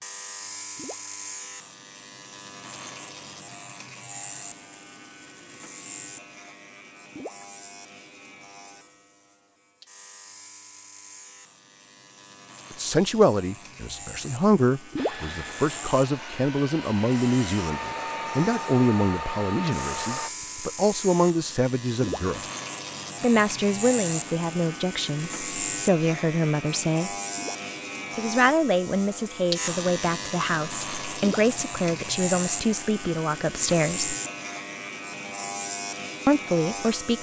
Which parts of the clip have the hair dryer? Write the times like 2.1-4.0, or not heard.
14.9-20.3.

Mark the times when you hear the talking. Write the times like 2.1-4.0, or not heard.
12.7-22.4, 23.2-27.1, 28.1-34.1, 36.2-37.1.